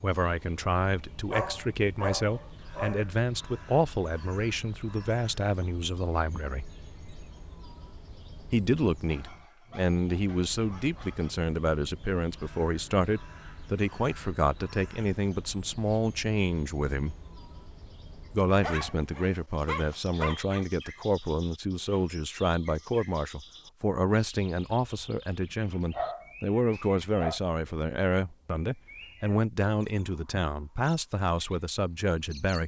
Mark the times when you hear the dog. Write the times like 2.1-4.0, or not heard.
1.2-3.0, 9.1-11.3, 18.5-20.6, 25.9-27.4.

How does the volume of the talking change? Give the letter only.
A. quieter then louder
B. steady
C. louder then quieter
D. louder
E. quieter
B.